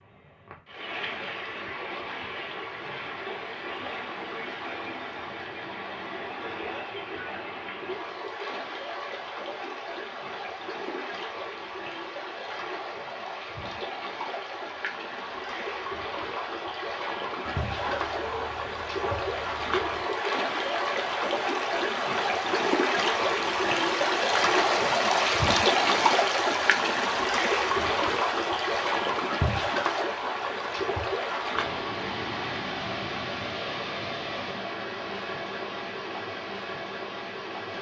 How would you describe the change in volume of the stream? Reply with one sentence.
The volume of the stream goes up, then down.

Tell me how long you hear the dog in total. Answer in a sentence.
You can hear the dog for 3 seconds altogether.